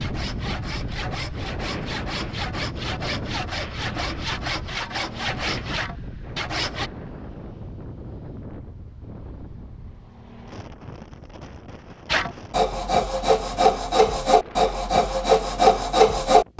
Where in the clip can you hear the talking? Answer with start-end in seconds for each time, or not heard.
not heard.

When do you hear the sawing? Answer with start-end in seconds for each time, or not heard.
0.0-6.9, 12.1-16.5.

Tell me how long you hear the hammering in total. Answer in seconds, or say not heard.
not heard.